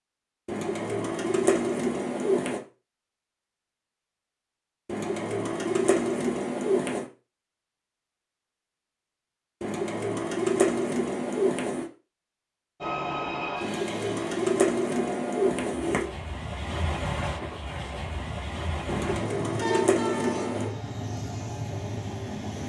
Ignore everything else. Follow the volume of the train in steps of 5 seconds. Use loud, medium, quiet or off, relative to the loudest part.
off, off, loud, loud, loud.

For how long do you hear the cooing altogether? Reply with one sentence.
You can hear the cooing for 11 seconds altogether.